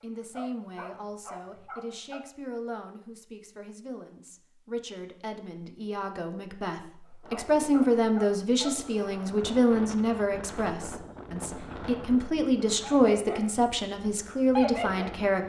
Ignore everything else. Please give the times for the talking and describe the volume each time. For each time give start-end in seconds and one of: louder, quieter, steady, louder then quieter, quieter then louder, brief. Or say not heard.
0.0-15.4 louder.